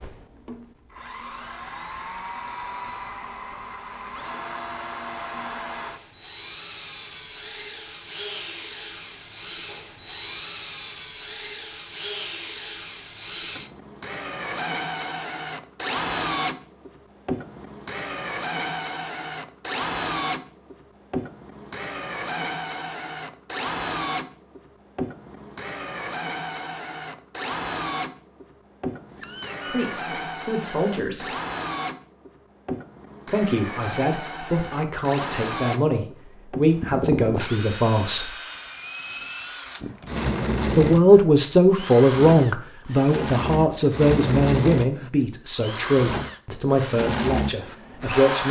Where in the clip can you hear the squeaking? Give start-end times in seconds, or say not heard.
29.1-30.1.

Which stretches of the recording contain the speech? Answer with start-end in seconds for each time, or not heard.
29.6-31.4, 33.2-38.3, 40.8-48.4.